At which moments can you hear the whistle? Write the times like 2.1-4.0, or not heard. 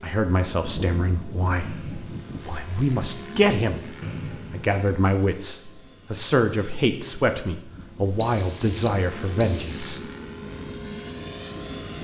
1.6-2.3, 4.0-4.8, 8.2-10.0.